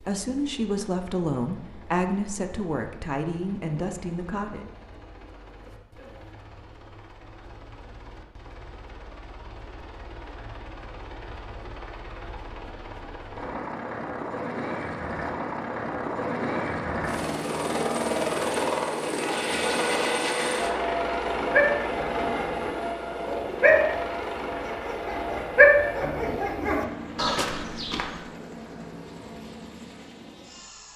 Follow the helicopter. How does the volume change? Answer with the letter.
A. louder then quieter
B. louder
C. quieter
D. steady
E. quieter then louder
A.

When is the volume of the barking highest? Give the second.
26 s.